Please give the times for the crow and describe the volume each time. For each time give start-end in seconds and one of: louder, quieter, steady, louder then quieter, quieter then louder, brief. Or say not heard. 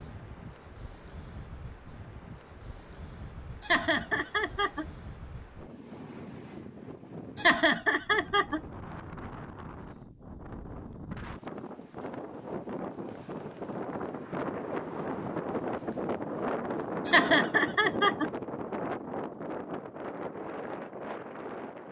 not heard.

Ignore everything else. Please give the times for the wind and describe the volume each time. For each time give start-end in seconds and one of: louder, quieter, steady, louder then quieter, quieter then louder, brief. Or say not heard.
0.0-21.8 louder.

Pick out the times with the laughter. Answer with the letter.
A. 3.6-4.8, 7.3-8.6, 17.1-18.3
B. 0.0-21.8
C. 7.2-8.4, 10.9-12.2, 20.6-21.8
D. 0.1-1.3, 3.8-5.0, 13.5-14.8
A.